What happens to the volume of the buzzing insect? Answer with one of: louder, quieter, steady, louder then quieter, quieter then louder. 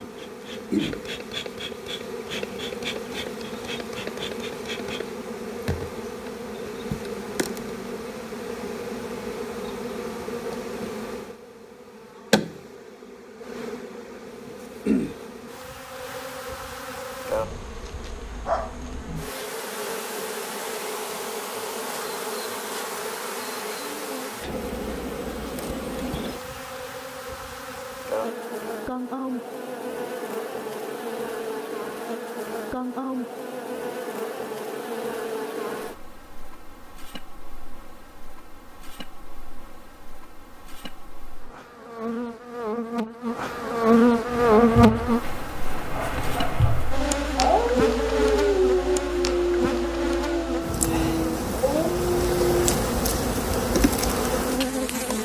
louder.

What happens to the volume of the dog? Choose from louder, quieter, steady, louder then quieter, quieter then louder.
louder then quieter.